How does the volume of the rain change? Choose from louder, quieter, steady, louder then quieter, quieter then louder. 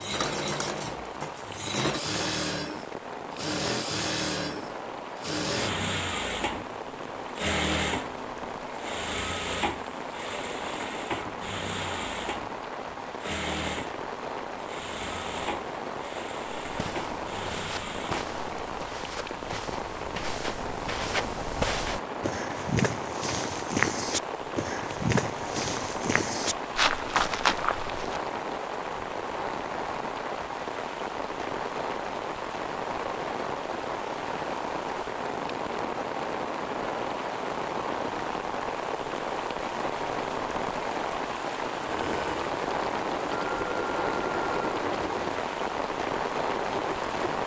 louder.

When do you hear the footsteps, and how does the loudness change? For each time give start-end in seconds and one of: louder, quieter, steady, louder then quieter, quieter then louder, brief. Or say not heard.
16.6-28.2 louder.